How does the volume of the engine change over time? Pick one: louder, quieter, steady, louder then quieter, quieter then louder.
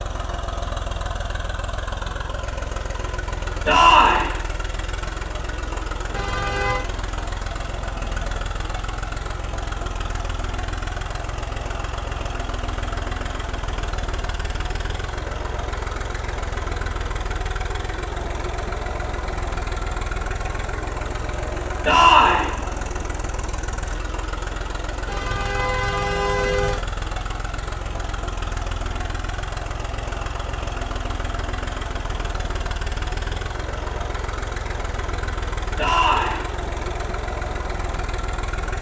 steady.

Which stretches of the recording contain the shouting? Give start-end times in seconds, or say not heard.
3.6-4.2, 21.9-22.4, 35.8-36.4.